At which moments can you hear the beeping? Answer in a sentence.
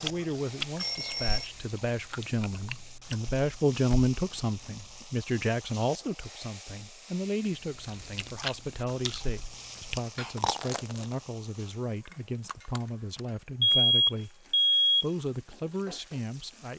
You can hear the beeping from 0.8 to 1.4 s and from 12.4 to 14.9 s.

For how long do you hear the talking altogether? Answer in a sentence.
The talking can be heard for 17 seconds in total.